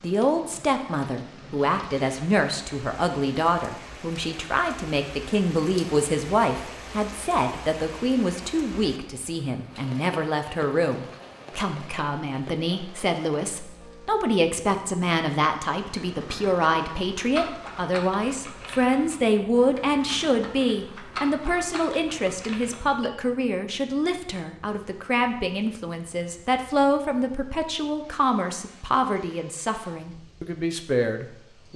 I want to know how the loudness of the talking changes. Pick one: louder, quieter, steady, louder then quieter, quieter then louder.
steady.